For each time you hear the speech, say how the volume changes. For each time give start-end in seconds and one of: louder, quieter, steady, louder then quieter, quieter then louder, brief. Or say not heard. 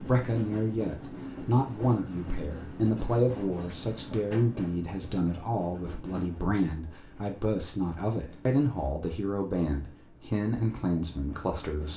0.0-11.9 steady.